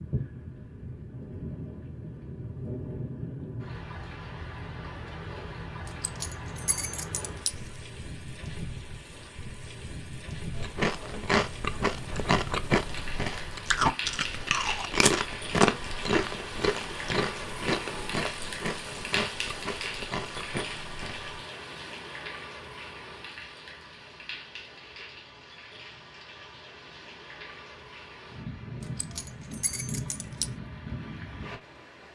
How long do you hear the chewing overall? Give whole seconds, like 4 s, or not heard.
11 s.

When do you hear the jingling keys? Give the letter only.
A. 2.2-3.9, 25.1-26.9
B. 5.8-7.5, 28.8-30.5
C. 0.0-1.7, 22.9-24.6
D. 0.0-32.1
B.